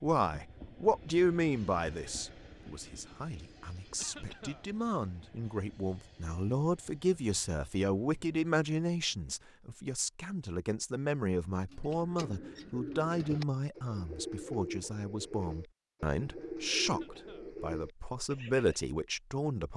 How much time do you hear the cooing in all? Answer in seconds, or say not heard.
7 s.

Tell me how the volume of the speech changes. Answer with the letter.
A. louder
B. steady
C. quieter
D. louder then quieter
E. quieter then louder
B.